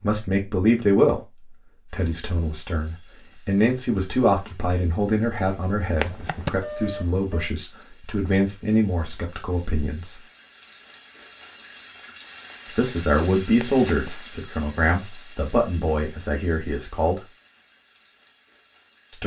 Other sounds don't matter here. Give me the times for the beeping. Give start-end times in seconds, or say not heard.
6.0-7.5, 13.6-14.1.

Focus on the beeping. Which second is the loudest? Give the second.
7 s.